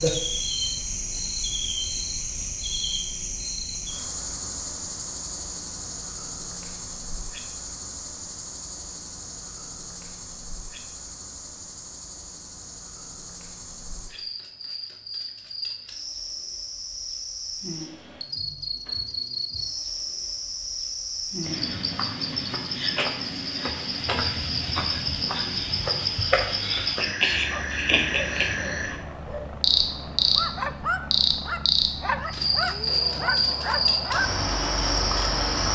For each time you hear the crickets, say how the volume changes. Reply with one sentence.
You can hear the crickets from 0.0 to 35.6 s, getting quieter then louder.